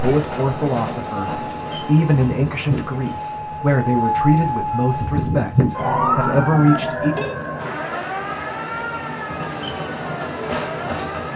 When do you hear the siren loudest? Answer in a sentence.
The loudest moment of the siren is at 6 seconds.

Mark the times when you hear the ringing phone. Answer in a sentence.
The ringing phone can be heard from 6.2 to 7.3 s.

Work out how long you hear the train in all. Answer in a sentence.
You can hear the train for 11 seconds altogether.